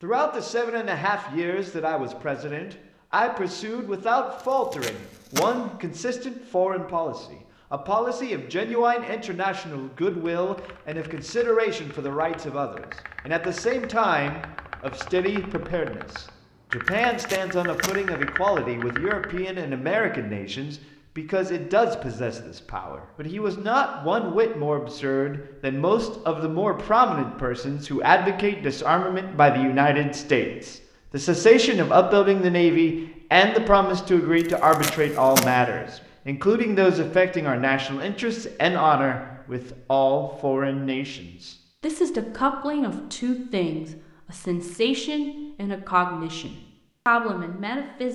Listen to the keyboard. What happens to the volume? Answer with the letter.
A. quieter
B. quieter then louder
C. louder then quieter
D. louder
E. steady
D.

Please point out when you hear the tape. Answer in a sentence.
You can hear the tape from 4.4 to 5.5 s, from 16.9 to 17.9 s and from 34.4 to 35.5 s.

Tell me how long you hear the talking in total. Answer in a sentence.
The talking can be heard for 48 seconds in total.